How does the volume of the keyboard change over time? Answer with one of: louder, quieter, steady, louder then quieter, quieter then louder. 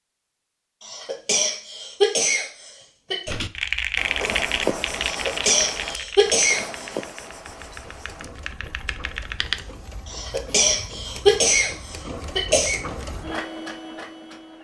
quieter then louder.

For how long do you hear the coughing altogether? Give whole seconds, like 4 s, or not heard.
7 s.